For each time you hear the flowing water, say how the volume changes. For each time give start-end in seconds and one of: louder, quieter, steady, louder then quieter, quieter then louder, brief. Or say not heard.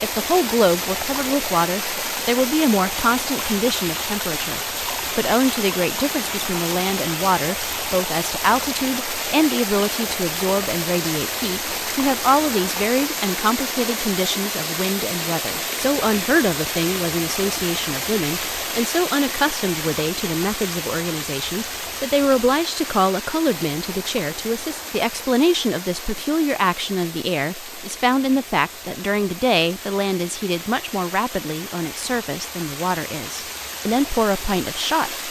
0.0-35.2 quieter.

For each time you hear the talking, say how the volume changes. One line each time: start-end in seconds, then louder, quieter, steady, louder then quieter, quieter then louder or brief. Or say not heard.
0.0-35.2 steady.